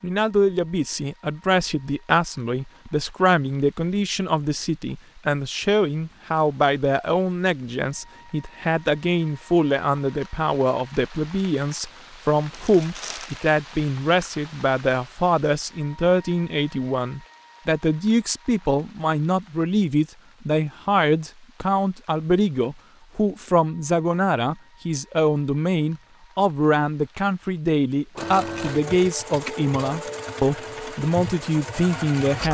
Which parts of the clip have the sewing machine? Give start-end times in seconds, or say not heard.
28.1-32.4.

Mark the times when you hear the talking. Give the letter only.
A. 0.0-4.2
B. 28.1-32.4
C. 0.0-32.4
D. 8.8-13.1
C.